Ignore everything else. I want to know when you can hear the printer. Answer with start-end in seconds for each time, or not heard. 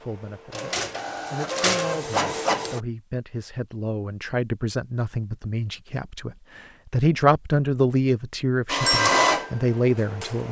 0.0-2.8, 8.7-10.4.